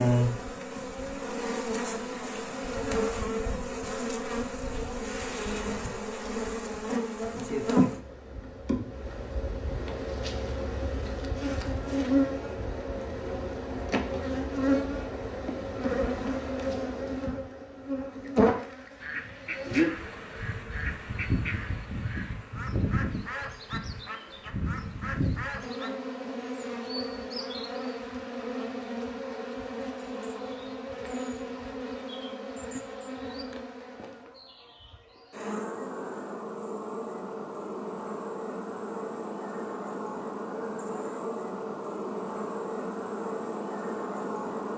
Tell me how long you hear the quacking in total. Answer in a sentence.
The quacking can be heard for 8 seconds in total.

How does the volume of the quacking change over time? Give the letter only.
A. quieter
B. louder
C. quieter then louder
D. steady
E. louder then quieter
D.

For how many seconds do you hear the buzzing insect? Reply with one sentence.
You can hear the buzzing insect for 45 seconds altogether.